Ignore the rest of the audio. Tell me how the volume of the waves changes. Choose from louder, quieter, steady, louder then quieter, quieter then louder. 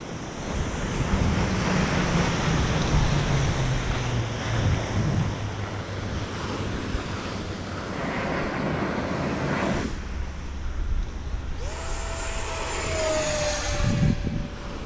quieter.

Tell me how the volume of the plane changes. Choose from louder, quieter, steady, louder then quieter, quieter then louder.
quieter then louder.